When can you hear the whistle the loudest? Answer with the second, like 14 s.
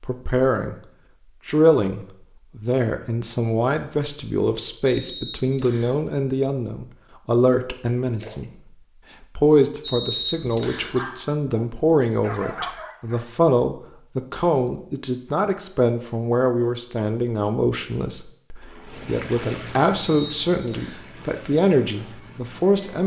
10 s.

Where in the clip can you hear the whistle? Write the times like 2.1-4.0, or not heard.
4.8-6.0, 9.8-10.9, 20.1-21.1.